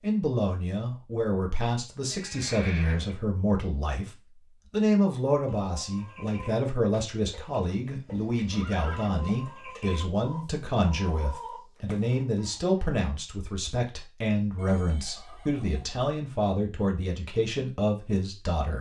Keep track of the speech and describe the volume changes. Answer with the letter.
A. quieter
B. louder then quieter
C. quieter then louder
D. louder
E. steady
E.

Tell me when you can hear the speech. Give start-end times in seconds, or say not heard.
0.0-18.7.